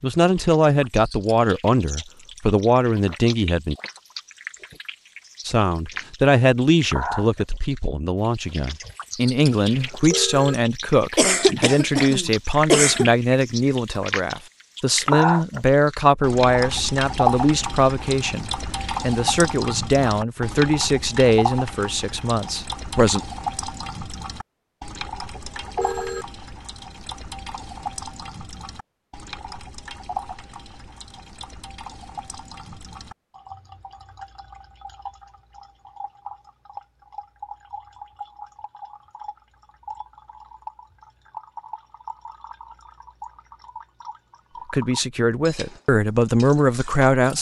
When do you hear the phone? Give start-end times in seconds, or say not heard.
9.8-10.6, 25.3-26.2.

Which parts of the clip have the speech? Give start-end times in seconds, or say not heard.
0.0-3.8, 5.5-23.2, 44.7-47.3.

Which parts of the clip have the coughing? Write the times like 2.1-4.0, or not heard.
11.2-13.1.